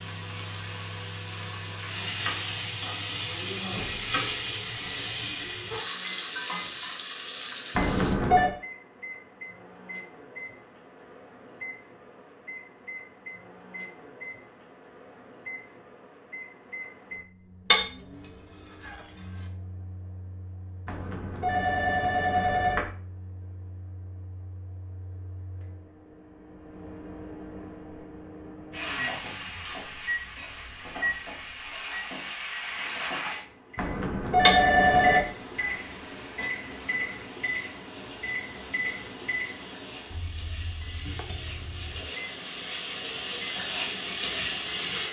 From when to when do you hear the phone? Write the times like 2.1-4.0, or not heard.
7.8-8.5, 20.9-22.9, 33.8-35.2.